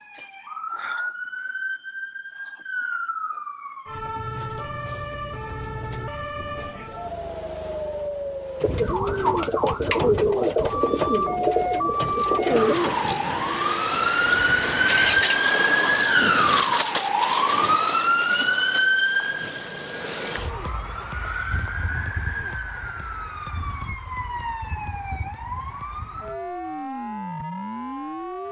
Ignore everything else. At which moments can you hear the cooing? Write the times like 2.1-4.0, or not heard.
8.6-15.2.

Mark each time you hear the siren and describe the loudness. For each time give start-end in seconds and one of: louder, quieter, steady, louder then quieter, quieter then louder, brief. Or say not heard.
0.0-28.4 louder then quieter.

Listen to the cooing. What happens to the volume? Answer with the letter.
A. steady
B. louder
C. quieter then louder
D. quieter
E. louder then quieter
D.